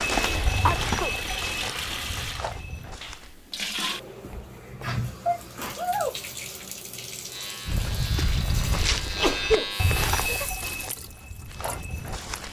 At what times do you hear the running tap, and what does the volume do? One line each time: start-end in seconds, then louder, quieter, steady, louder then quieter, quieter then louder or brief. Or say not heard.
0.0-12.4 quieter.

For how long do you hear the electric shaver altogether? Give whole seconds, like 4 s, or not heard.
3 s.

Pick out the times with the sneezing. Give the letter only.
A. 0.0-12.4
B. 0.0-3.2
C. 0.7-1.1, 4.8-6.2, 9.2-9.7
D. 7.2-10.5
C.